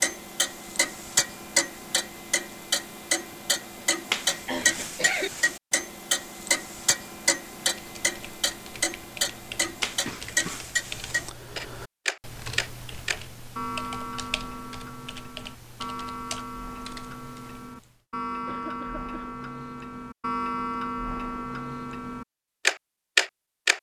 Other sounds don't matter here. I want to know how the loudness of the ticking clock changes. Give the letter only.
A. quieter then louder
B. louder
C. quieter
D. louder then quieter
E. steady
A.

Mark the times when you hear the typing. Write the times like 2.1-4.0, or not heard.
7.8-18.0.